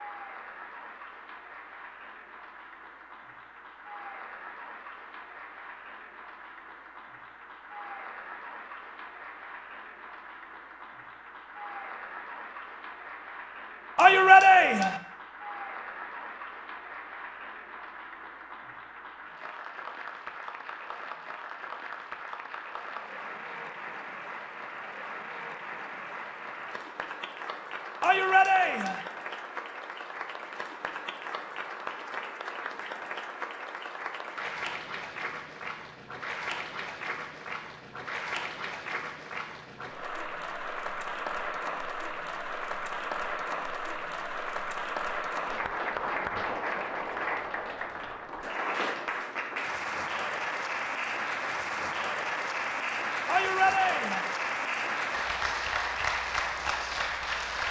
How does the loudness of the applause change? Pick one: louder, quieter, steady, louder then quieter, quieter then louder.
louder.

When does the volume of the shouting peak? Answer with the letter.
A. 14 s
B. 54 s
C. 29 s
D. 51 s
A.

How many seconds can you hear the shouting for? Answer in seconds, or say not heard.
3 s.